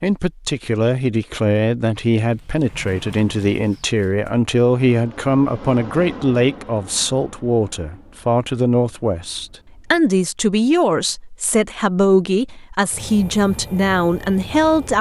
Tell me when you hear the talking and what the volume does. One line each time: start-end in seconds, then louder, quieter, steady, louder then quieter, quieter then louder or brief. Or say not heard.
0.0-14.9 steady.